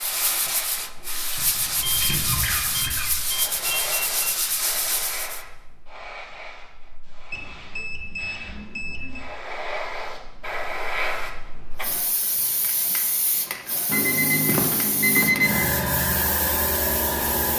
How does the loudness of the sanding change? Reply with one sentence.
The volume of the sanding stays about the same.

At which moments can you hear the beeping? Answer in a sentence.
You can hear the beeping from 1.8 to 4.3 s, from 7.3 to 9.2 s and from 13.8 to 15.8 s.